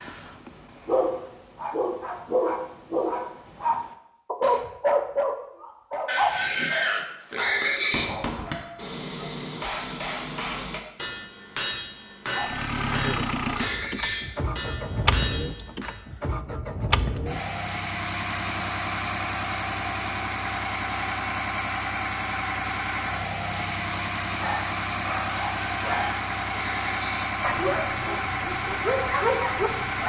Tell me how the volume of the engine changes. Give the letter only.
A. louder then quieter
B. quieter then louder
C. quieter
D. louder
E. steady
E.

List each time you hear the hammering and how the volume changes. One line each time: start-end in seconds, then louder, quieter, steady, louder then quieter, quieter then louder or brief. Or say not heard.
7.3-16.0 steady.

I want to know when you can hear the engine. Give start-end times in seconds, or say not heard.
12.3-30.0.